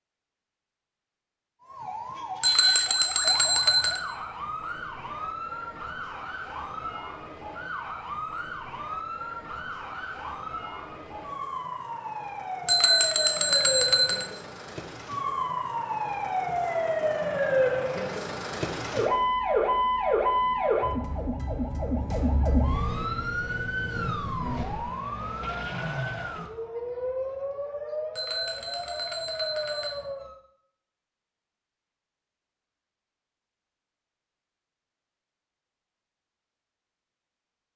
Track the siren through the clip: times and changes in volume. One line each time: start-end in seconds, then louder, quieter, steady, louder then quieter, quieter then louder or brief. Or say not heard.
1.6-30.4 louder then quieter.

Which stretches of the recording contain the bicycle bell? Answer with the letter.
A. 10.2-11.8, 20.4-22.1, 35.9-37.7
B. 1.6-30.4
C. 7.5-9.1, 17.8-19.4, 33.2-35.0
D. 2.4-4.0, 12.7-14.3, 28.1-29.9
D.